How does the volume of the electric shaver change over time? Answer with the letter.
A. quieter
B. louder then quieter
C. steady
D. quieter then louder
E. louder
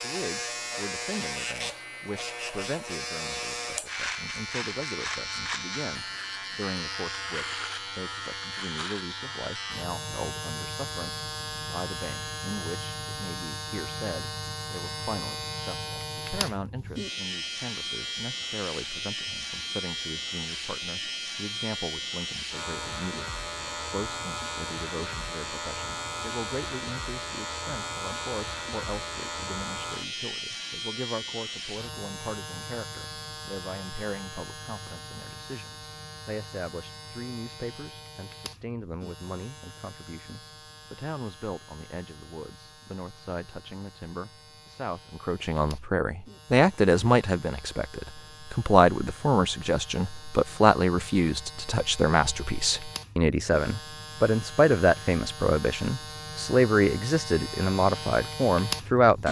D.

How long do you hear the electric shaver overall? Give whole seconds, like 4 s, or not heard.
59 s.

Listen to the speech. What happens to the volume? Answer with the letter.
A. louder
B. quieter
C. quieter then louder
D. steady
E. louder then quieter
A.